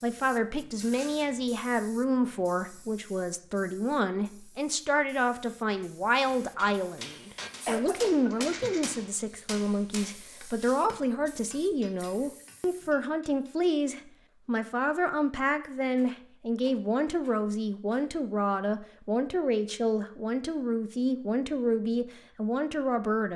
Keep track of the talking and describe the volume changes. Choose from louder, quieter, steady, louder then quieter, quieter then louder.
steady.